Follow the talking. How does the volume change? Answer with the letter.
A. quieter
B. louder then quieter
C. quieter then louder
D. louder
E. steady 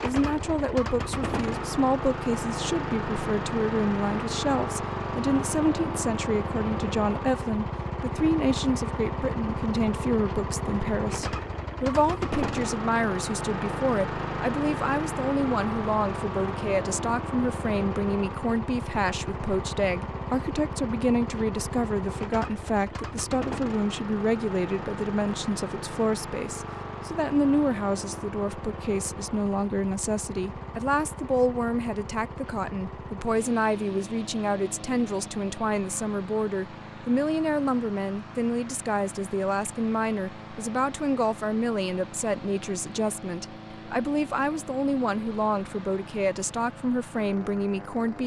E.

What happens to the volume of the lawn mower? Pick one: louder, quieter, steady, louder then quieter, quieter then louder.
quieter.